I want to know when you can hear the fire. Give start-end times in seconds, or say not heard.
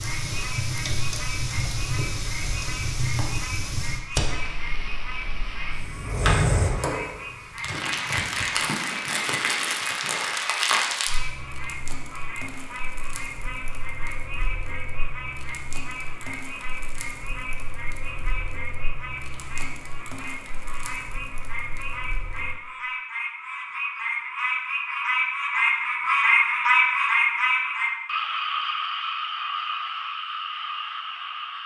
0.0-22.6.